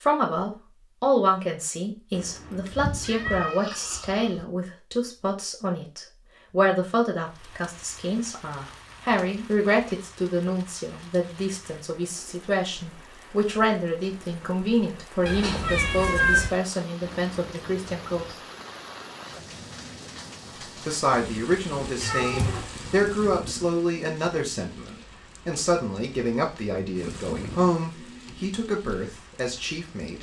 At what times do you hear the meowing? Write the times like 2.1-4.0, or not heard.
2.7-4.5, 15.2-16.6, 22.0-22.7.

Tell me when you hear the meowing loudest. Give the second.
16 s.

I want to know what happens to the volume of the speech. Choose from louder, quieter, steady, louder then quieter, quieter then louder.
steady.